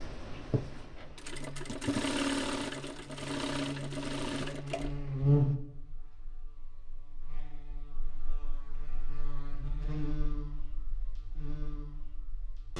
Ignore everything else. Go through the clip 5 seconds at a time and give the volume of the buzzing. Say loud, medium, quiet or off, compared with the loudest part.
medium, loud, medium.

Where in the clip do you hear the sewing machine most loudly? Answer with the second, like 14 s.
2 s.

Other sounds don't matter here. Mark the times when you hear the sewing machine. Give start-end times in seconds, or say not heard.
0.0-5.5.